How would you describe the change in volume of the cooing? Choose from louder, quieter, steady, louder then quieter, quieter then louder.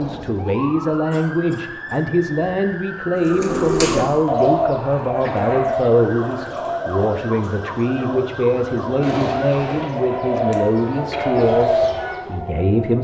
quieter then louder.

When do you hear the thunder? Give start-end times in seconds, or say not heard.
9.0-10.7.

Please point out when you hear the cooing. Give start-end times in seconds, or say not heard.
3.1-12.2.